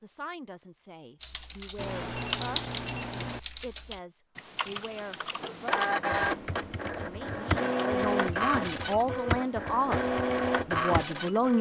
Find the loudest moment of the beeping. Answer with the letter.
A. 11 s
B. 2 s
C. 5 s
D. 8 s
B.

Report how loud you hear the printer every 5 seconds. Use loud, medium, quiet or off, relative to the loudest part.
off, loud, loud.